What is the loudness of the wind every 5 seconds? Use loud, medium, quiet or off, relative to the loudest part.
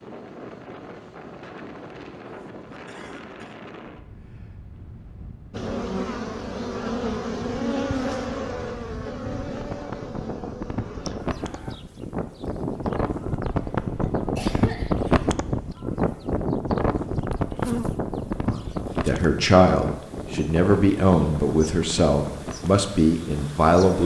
quiet, quiet, loud, loud, medium.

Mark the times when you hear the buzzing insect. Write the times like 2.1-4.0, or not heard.
5.5-24.0.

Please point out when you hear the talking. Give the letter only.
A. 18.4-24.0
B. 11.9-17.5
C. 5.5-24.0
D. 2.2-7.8
A.